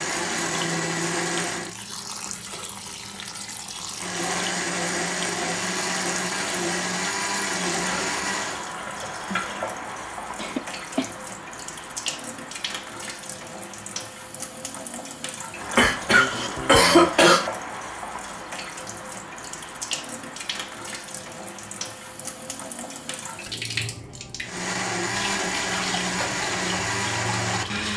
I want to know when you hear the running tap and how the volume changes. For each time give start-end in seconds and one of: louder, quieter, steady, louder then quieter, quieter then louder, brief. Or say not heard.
0.1-27.9 steady.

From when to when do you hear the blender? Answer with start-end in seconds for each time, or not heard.
0.0-1.8, 4.0-8.7, 24.4-27.9.